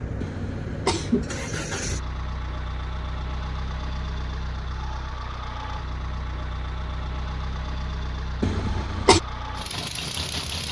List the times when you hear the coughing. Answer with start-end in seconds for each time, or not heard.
0.2-1.2, 8.4-9.2.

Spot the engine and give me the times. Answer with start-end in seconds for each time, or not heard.
0.0-10.6.